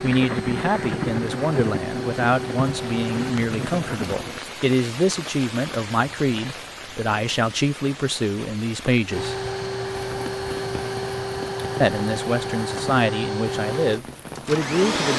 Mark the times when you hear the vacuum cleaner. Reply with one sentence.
You can hear the vacuum cleaner from 0.0 to 3.5 s and from 9.1 to 15.1 s.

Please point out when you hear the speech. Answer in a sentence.
The speech can be heard from 0.0 to 9.3 s and from 11.8 to 15.1 s.